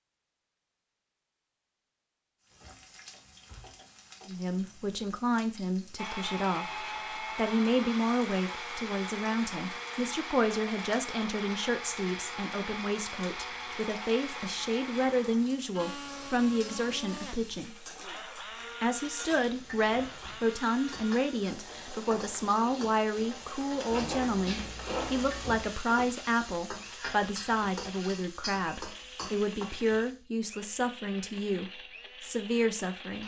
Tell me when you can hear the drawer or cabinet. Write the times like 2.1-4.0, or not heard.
2.5-3.9, 19.3-20.4, 23.9-25.8.